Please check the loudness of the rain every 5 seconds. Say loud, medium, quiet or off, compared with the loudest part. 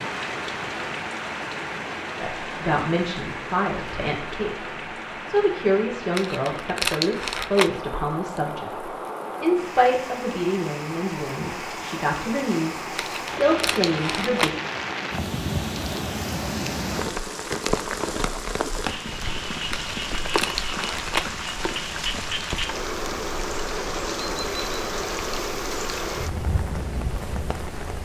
loud, medium, loud, loud, loud, loud.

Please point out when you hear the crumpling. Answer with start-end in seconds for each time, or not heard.
6.2-7.7, 12.9-14.5, 19.7-21.2.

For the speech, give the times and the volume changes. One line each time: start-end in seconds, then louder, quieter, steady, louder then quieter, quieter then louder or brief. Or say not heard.
2.2-14.5 steady.